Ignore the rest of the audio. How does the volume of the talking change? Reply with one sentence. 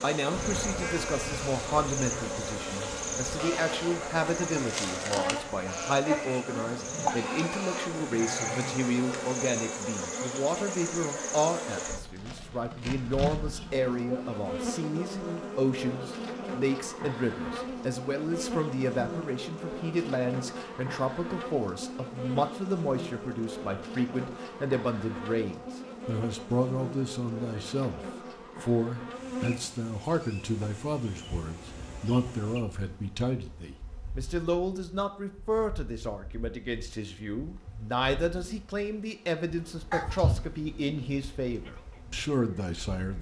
The loudness of the talking stays about the same.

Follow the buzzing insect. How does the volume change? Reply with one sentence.
The volume of the buzzing insect goes down.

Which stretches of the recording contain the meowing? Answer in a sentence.
The meowing can be heard from 39.9 to 40.5 s.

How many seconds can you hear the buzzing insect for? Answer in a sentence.
The buzzing insect can be heard for 43 seconds in total.